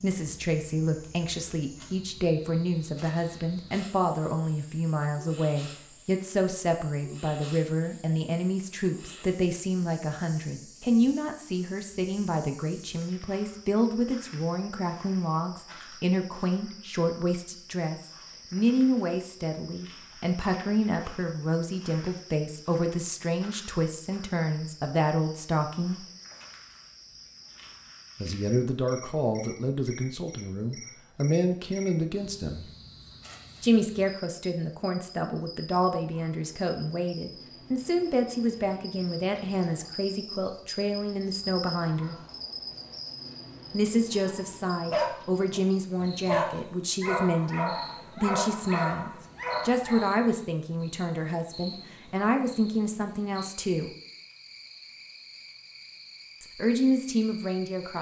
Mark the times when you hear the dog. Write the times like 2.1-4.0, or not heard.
44.1-50.1.